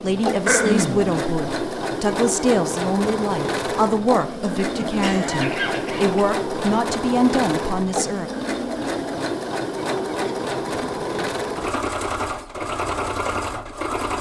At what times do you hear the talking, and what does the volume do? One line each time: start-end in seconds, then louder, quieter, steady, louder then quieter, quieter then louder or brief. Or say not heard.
0.0-8.3 steady.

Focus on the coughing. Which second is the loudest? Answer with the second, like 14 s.
1 s.